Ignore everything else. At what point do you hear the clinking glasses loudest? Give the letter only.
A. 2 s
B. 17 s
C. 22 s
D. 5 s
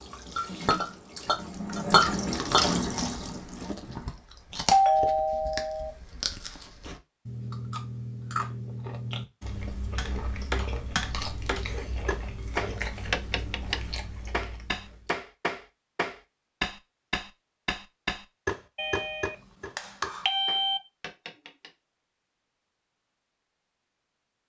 A.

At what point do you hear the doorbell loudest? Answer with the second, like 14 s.
5 s.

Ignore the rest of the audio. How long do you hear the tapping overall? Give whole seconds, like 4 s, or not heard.
12 s.